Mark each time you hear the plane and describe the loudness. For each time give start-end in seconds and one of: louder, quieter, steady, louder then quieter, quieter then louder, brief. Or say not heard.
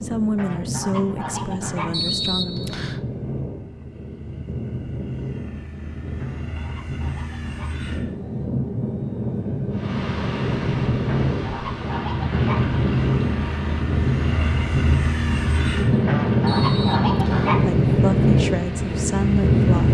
0.0-19.8 louder.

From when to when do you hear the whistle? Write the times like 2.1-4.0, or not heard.
1.9-3.0, 16.4-17.6.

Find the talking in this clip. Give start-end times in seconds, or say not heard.
0.0-2.8, 17.6-19.8.